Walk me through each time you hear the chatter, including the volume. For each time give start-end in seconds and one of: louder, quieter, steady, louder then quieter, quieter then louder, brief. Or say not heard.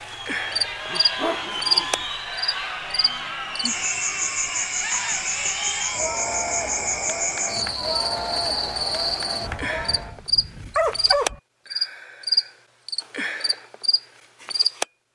0.0-10.2 steady.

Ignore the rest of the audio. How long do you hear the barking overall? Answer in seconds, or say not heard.
4 s.